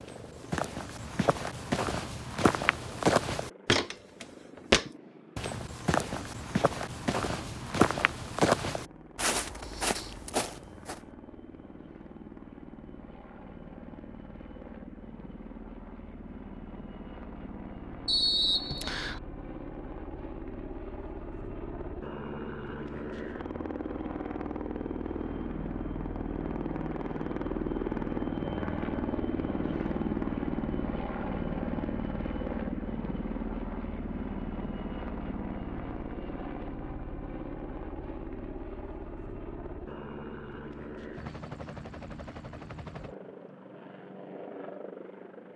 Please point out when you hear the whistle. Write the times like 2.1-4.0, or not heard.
18.1-19.2.